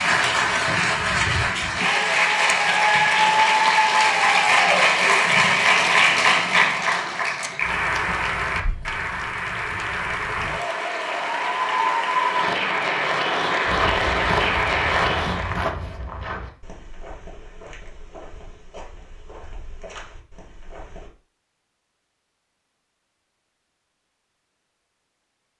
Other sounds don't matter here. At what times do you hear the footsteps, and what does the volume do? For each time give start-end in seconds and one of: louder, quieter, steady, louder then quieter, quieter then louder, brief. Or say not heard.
13.7-21.1 quieter.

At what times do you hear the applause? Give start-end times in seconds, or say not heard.
0.0-15.6.